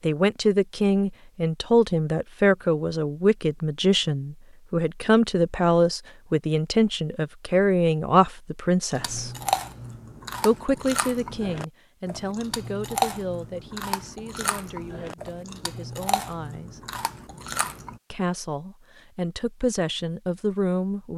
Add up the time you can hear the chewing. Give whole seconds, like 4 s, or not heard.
9 s.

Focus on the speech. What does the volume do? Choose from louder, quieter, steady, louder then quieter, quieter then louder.
quieter then louder.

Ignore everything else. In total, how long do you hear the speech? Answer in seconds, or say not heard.
19 s.